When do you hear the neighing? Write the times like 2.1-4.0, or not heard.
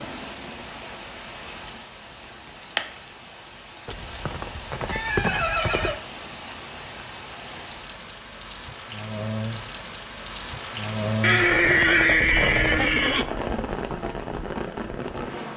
3.9-6.0, 11.2-13.2.